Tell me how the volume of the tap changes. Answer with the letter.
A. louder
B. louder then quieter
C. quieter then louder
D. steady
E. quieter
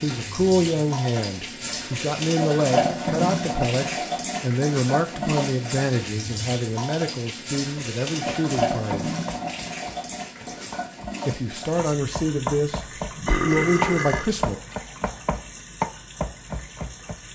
E.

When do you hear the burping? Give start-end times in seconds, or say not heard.
13.2-14.3.